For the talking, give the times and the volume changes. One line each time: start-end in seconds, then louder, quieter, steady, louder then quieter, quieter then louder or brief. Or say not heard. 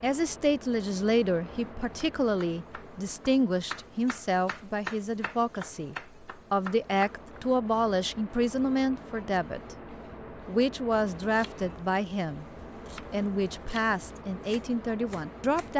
0.0-12.4 steady
13.1-15.7 brief.